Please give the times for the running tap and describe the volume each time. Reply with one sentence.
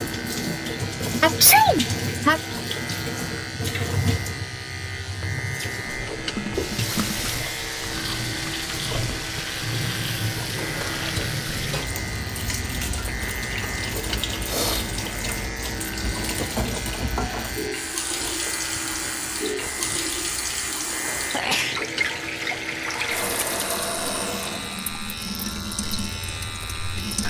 You can hear the running tap from 0.0 to 27.2 s, at a steady volume.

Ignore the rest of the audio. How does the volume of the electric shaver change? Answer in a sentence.
The loudness of the electric shaver stays about the same.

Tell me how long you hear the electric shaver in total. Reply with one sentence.
The electric shaver can be heard for 27 seconds in total.